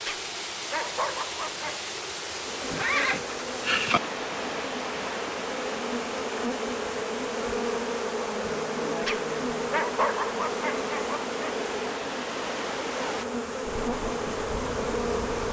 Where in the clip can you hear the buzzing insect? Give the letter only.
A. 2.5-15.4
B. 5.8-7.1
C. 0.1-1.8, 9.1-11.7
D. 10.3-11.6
A.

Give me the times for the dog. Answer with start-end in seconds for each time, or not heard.
0.1-1.8, 9.1-11.7.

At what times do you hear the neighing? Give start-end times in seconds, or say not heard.
2.7-4.0.